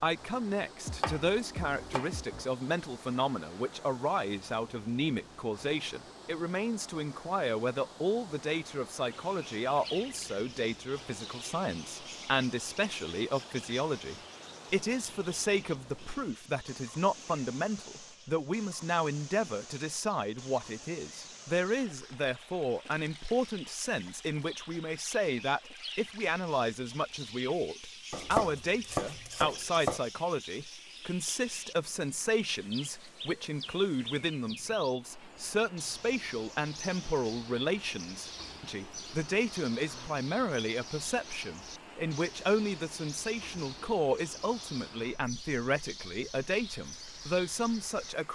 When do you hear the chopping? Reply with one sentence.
The chopping can be heard from 0.8 to 2.5 s and from 28.1 to 30.0 s.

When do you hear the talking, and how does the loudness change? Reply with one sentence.
The talking can be heard from 0.0 to 48.2 s, at a steady volume.